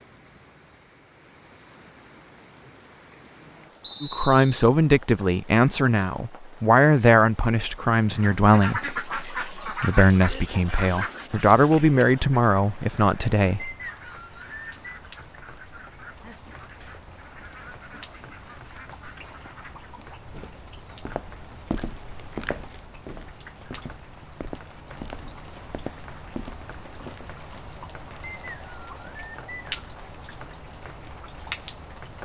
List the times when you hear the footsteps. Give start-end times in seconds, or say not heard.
20.3-27.4.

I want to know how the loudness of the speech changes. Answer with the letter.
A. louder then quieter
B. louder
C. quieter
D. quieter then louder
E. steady
E.